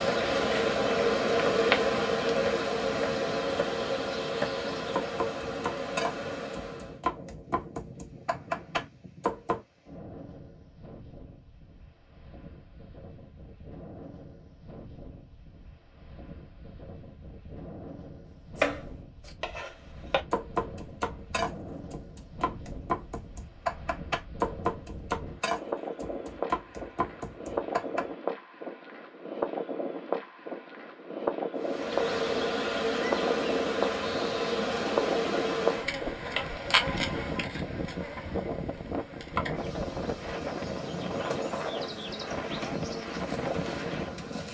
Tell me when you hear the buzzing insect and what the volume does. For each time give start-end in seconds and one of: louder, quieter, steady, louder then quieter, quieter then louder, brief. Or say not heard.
0.0-7.0 quieter
31.6-44.4 quieter.